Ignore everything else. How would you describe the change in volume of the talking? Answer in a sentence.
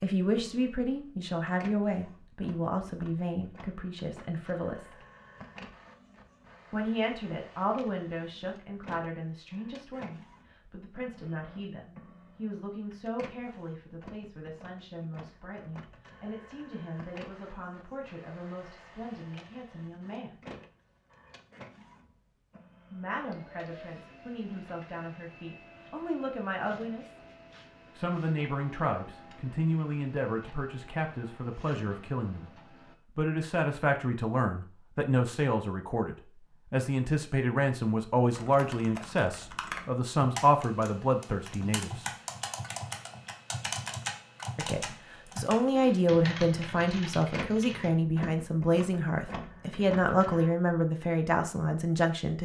The volume of the talking goes down, then up.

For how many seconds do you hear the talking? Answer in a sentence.
You can hear the talking for 44 seconds altogether.